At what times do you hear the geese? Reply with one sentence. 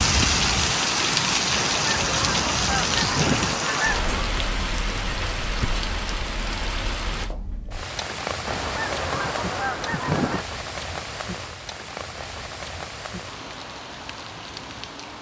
You can hear the geese from 1.6 to 4.2 s and from 8.4 to 10.4 s.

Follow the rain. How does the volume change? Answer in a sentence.
The loudness of the rain goes down.